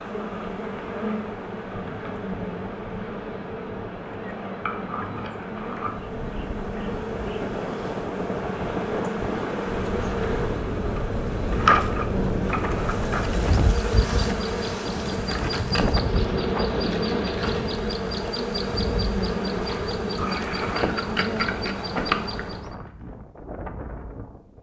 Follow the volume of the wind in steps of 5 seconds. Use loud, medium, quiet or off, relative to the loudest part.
medium, loud, loud, loud, medium.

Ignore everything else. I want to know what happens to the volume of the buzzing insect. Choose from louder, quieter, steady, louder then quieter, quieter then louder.
louder.